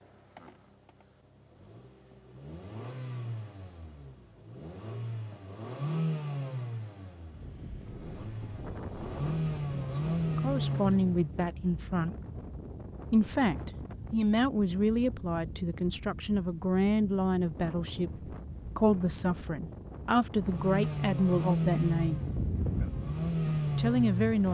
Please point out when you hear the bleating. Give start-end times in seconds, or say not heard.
not heard.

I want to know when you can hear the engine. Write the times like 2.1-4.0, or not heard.
0.3-11.2, 20.4-24.4.